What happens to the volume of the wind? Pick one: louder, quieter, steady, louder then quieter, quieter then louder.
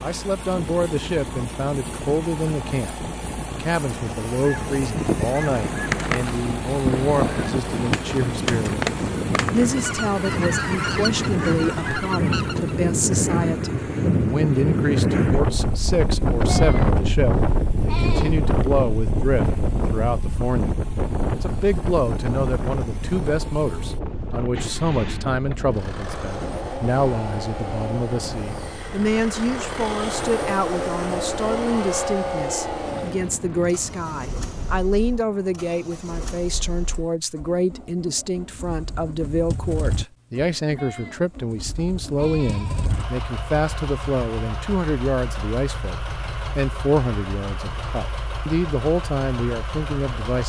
louder then quieter.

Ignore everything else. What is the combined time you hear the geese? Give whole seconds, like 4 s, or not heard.
8 s.